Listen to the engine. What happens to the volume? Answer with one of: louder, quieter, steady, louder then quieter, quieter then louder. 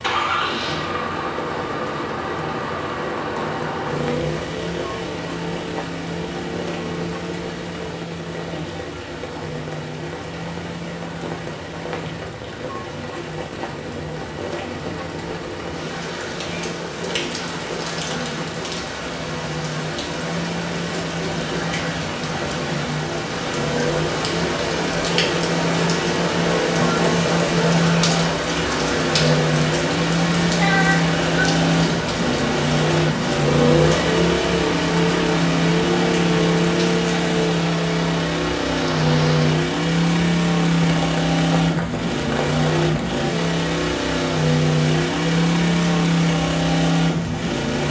quieter then louder.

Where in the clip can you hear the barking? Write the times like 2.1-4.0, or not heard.
not heard.